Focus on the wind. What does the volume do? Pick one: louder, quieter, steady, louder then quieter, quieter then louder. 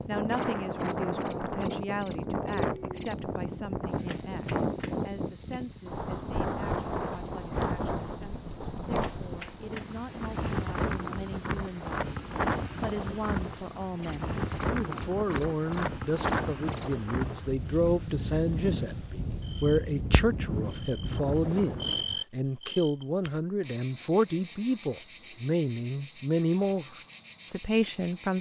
steady.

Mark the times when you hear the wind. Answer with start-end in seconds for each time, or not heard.
0.0-22.1.